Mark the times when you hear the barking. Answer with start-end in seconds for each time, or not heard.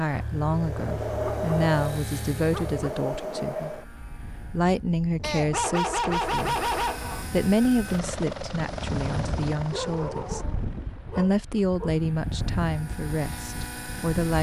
0.1-2.9, 5.2-7.2, 9.7-11.9.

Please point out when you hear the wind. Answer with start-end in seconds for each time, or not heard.
0.0-14.3.